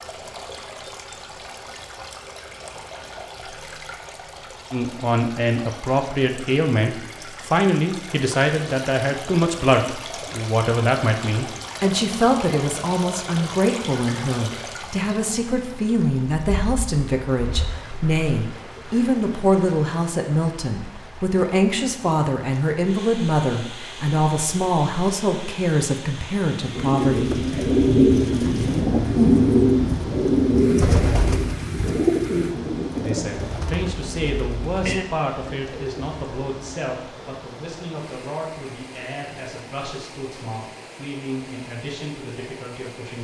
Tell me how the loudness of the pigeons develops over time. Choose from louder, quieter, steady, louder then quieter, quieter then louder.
quieter.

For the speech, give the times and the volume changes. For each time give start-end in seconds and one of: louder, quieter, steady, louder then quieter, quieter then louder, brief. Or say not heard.
4.7-27.6 steady
33.0-43.2 quieter.